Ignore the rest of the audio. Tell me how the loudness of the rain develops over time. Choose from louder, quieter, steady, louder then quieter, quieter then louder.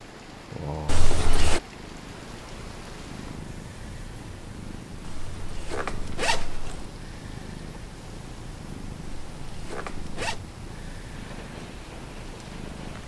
steady.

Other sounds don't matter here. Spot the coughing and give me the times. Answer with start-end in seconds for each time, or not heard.
not heard.